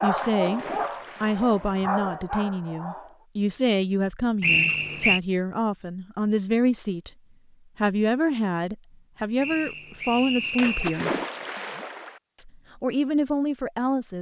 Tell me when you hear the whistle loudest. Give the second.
5 s.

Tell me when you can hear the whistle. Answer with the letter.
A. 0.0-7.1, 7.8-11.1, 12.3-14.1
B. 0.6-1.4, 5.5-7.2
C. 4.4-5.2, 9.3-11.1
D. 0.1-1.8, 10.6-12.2
C.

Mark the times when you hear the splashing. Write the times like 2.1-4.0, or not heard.
0.1-1.8, 10.6-12.2.